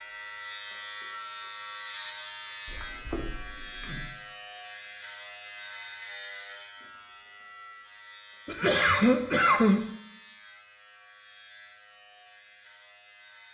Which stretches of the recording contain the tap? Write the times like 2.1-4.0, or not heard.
not heard.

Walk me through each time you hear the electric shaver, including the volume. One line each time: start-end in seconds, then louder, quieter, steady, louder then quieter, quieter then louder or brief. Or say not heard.
0.0-13.4 quieter.